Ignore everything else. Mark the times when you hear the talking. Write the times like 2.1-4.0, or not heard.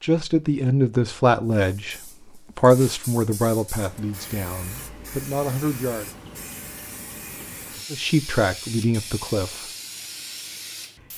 0.0-6.0, 7.9-9.7.